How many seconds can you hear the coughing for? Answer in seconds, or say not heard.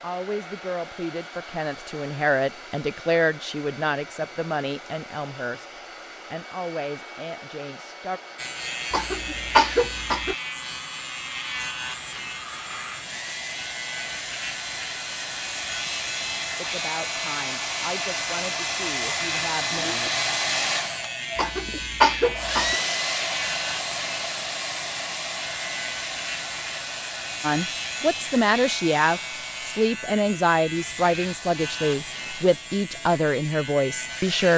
3 s.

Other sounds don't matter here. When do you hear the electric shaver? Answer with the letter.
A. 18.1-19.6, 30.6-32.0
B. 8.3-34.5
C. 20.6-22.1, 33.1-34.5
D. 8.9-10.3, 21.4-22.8
B.